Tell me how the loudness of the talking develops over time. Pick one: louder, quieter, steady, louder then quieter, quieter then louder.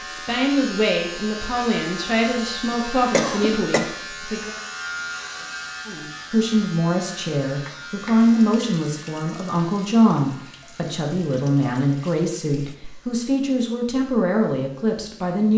steady.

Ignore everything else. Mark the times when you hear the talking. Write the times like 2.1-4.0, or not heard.
0.0-4.5, 5.8-15.5.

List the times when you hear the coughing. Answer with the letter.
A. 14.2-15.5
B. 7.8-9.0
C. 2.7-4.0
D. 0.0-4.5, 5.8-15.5
C.